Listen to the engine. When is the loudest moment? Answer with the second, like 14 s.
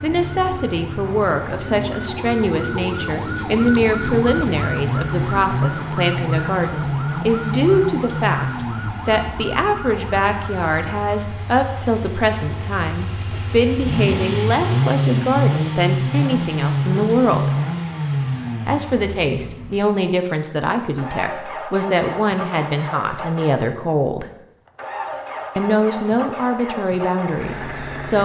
15 s.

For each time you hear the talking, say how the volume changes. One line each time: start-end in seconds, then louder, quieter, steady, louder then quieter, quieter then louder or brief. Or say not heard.
0.0-17.5 steady
18.6-24.3 steady
25.6-28.2 brief.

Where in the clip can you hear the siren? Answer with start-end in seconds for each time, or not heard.
0.0-11.1.